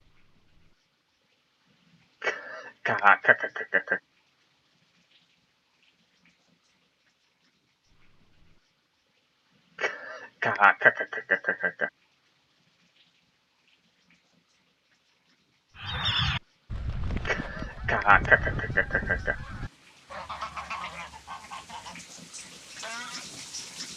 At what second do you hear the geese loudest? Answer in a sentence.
The loudest moment of the geese is at 16 seconds.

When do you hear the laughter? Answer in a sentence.
The laughter can be heard from 2.2 to 4.0 s, from 9.8 to 11.9 s and from 17.2 to 19.4 s.